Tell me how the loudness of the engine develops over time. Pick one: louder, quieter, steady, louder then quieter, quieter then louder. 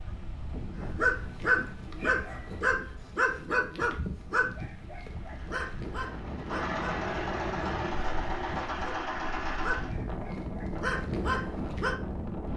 louder.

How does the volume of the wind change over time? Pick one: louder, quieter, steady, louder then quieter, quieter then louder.
quieter then louder.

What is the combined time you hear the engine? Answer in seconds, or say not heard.
5 s.